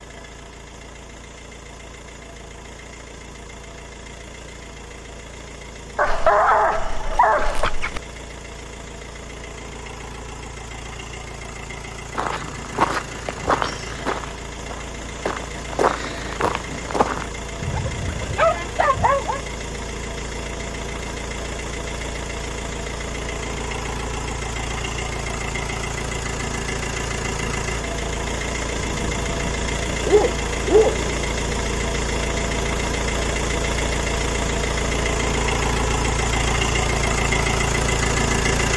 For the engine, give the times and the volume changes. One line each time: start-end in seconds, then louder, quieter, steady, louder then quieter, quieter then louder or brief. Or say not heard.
0.0-38.7 louder.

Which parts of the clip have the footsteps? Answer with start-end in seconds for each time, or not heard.
12.2-17.3.